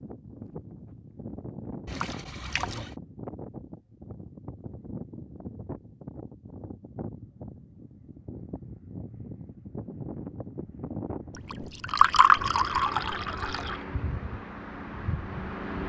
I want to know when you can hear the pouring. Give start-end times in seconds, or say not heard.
1.9-3.0, 11.5-13.8.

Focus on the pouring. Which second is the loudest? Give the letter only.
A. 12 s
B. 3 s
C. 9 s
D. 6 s
A.